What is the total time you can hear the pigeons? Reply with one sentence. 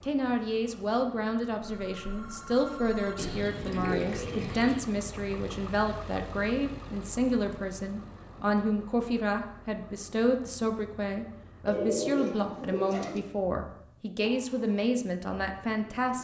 The pigeons can be heard for 3 seconds in total.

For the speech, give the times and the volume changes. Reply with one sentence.
You can hear the speech from 0.0 to 16.1 s, at a steady volume.